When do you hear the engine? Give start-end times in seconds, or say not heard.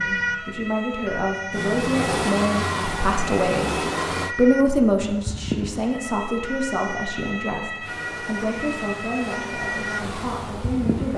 1.5-4.3, 7.8-11.1.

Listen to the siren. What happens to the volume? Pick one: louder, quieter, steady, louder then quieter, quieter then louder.
steady.